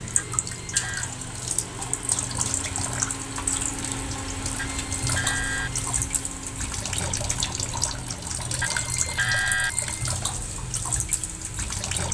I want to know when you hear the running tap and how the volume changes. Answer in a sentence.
You can hear the running tap from 0.0 to 12.0 s, at a steady volume.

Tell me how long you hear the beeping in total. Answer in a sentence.
The beeping can be heard for 4 seconds in total.